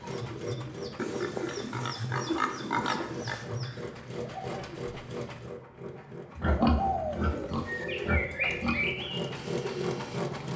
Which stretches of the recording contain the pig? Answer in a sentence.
The pig can be heard from 0.9 to 3.5 s and from 6.3 to 9.1 s.